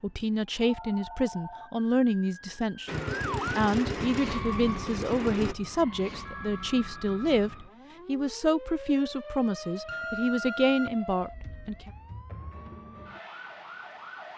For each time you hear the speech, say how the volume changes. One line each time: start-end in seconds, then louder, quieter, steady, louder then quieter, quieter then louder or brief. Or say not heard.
0.0-11.9 steady.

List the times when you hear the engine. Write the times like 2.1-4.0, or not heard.
2.9-5.5.